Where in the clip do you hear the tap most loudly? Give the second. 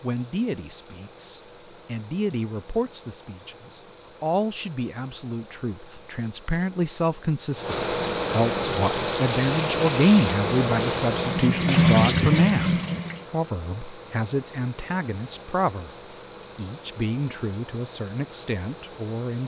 12 s.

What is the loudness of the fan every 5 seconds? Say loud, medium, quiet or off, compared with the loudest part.
quiet, loud, loud, quiet.